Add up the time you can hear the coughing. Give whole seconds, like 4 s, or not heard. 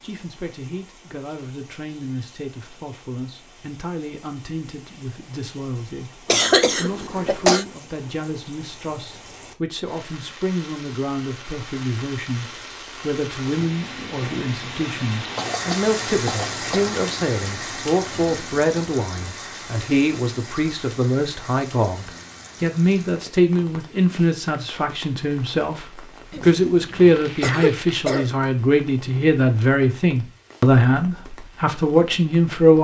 5 s.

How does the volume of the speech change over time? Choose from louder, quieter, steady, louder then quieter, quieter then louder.
louder.